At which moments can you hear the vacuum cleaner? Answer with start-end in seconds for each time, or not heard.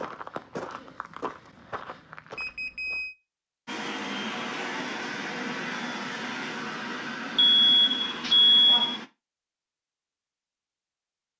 3.6-9.1.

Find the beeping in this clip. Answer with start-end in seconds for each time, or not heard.
2.4-3.1, 7.4-9.0.